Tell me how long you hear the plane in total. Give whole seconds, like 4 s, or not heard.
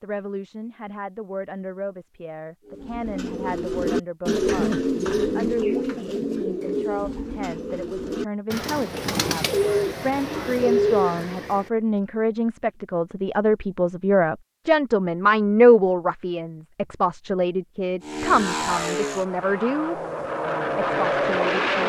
4 s.